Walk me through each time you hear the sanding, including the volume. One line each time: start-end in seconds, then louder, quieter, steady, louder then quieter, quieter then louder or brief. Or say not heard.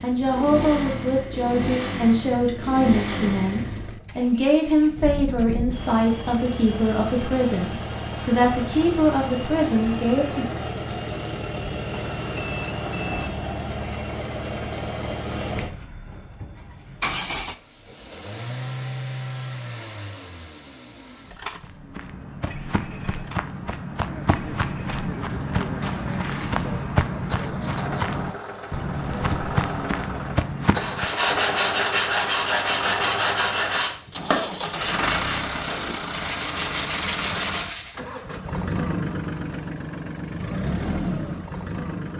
30.6-38.0 quieter.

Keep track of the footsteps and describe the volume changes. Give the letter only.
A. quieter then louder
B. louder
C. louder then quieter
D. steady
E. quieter
B.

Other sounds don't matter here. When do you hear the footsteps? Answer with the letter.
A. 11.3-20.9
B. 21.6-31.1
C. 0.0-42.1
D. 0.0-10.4
B.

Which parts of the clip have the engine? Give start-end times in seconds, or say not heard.
0.0-42.1.